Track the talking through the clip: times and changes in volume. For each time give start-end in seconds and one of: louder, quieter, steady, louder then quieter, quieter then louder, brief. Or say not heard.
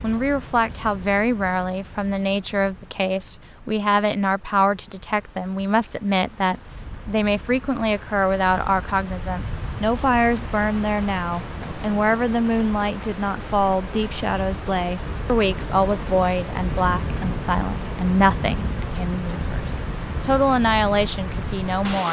0.0-22.0 steady.